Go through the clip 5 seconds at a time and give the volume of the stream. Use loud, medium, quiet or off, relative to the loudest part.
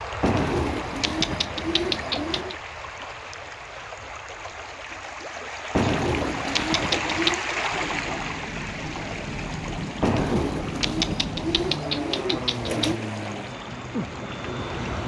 medium, loud, medium.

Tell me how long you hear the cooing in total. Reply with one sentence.
The cooing can be heard for 7 seconds in total.